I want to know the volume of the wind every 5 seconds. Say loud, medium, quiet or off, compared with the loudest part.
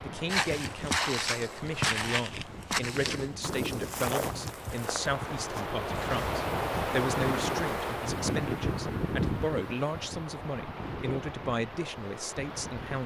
medium, loud, medium.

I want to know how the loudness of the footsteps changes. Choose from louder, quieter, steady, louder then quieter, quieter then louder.
quieter.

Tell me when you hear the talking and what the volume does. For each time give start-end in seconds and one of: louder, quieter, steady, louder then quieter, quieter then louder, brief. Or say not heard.
0.0-13.0 steady.